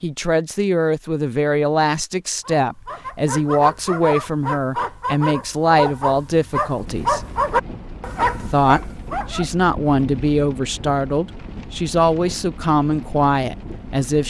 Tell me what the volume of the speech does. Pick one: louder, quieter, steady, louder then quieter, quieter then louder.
steady.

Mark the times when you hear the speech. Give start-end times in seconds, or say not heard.
0.0-7.2, 8.4-14.2.